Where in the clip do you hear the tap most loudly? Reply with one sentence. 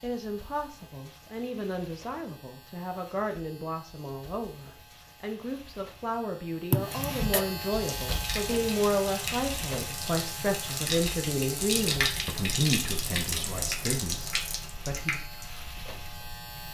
The loudest moment of the tap is at 12 seconds.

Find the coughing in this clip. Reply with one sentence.
The coughing can be heard from 6.7 to 7.5 s.